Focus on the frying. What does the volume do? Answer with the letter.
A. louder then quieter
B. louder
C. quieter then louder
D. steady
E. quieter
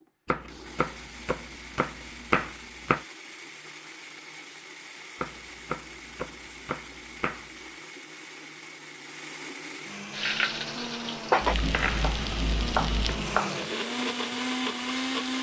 E.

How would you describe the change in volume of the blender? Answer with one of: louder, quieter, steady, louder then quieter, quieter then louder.
louder.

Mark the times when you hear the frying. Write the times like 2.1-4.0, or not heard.
10.1-15.3.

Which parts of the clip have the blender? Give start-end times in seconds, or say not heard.
0.0-15.3.